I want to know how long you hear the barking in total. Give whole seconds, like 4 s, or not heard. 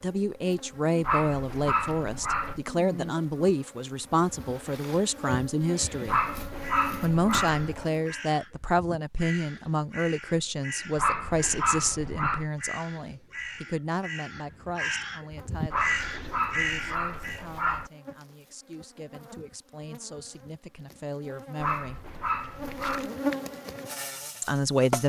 9 s.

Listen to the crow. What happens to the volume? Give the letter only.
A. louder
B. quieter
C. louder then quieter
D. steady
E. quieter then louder
A.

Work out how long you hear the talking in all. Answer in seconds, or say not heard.
21 s.